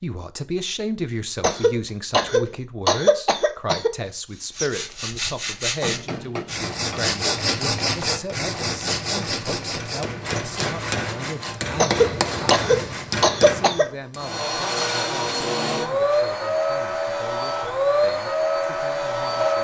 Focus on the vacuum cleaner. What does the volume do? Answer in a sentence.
The volume of the vacuum cleaner stays about the same.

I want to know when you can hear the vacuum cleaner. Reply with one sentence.
You can hear the vacuum cleaner from 14.2 to 19.6 s.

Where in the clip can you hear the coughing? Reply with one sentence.
You can hear the coughing from 1.4 to 4.0 s and from 11.8 to 13.8 s.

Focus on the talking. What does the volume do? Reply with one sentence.
The volume of the talking goes down.